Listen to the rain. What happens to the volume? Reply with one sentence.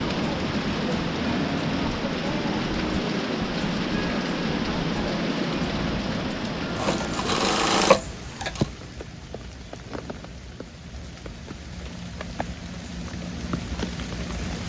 The volume of the rain goes down, then up.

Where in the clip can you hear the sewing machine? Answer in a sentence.
You can hear the sewing machine from 6.8 to 8.7 s.